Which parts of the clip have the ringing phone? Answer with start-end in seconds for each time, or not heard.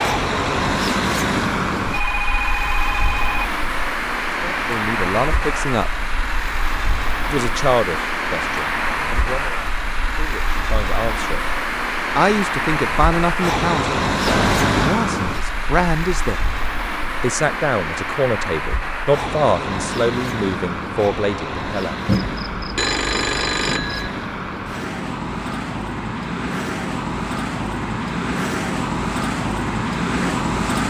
1.9-3.5, 14.2-15.0, 22.1-24.1.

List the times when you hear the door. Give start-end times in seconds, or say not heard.
not heard.